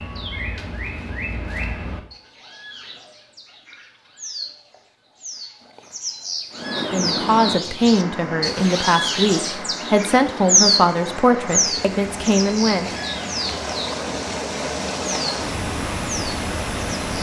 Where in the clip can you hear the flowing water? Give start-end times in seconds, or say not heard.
6.5-17.1.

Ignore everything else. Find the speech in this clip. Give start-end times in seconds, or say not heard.
6.8-12.9.